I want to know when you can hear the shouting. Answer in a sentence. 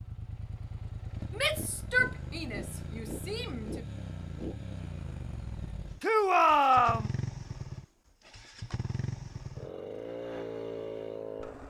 You can hear the shouting from 1.3 to 3.8 s and from 6.0 to 7.1 s.